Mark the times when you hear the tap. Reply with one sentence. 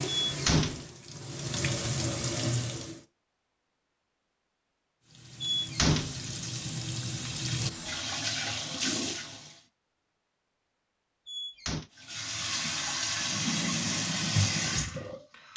The tap can be heard from 0.0 to 3.0 s, from 5.0 to 9.6 s and from 11.9 to 15.5 s.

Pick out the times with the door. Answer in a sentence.
You can hear the door from 0.2 to 0.8 s, from 5.4 to 6.7 s and from 11.2 to 11.9 s.